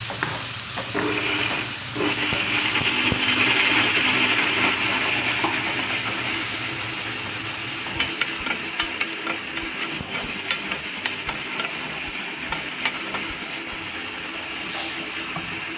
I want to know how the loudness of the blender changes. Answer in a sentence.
The loudness of the blender goes down.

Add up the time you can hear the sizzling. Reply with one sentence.
You can hear the sizzling for 16 seconds altogether.